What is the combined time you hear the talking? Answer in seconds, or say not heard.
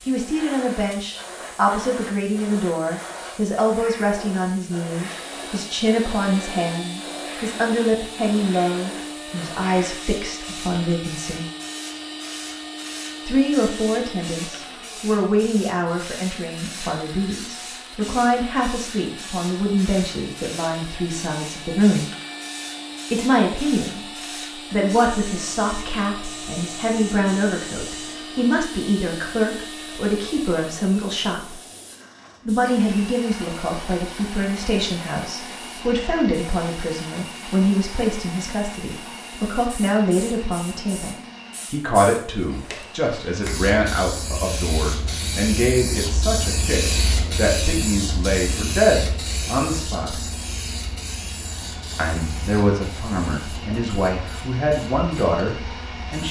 51 s.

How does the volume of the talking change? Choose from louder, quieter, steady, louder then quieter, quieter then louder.
steady.